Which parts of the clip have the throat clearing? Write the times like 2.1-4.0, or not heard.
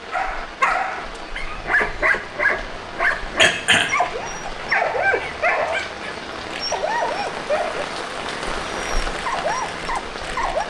3.4-3.9.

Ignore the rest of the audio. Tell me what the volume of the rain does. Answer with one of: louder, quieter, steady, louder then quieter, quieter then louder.
louder.